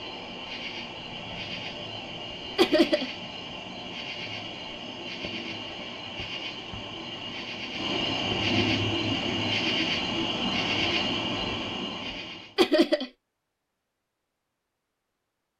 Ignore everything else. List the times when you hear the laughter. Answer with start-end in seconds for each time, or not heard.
2.5-3.1, 12.6-13.1.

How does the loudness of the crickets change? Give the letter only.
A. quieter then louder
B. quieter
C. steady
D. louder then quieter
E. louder
E.